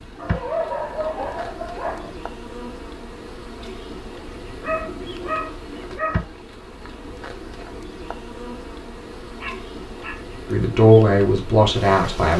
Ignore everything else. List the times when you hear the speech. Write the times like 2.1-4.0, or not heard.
10.4-12.3.